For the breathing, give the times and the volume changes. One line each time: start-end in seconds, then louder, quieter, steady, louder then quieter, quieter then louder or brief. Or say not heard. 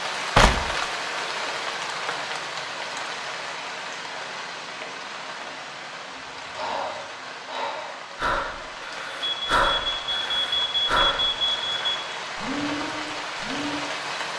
6.5-13.8 louder then quieter.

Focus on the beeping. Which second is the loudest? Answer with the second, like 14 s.
11 s.